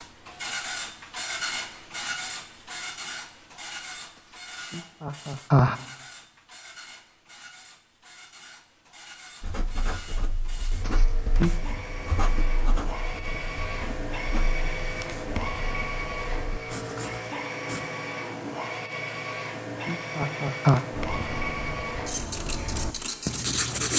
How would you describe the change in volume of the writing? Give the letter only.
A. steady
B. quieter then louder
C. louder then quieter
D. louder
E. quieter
D.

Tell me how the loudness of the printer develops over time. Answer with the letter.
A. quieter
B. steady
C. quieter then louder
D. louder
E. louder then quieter
C.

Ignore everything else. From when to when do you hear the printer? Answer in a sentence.
The printer can be heard from 0.0 to 23.9 s.